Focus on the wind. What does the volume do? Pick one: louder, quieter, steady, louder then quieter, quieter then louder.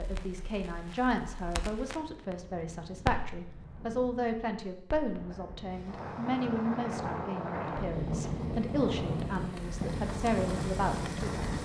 louder.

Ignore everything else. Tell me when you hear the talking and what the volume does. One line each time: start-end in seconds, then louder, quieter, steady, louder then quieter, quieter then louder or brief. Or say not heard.
0.0-11.4 steady.